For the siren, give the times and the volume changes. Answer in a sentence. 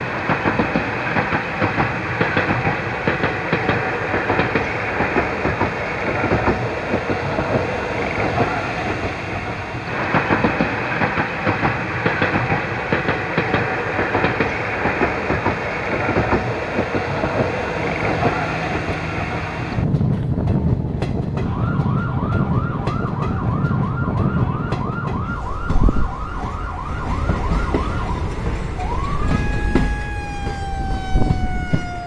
The siren can be heard from 17.9 to 32.0 s, at a steady volume.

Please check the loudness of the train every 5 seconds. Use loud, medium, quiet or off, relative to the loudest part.
loud, loud, loud, loud, loud, medium, medium.